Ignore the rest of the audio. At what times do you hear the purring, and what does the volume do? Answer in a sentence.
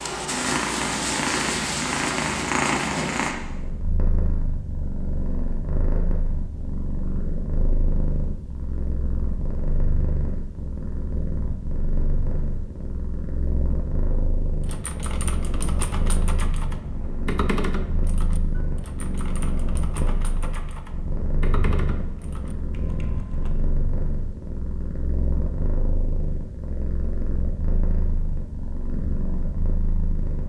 You can hear the purring from 0.0 to 30.4 s, getting quieter.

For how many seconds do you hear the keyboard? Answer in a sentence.
You can hear the keyboard for 9 seconds altogether.